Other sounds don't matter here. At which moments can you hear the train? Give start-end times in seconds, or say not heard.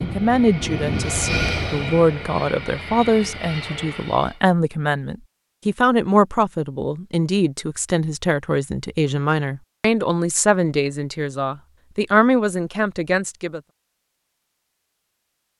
0.0-4.4.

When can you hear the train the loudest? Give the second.
1 s.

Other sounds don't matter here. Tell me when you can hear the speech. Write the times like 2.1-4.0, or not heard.
0.0-13.6.